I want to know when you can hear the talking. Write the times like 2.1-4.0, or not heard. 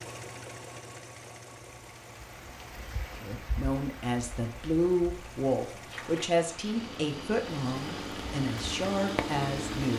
3.2-9.9.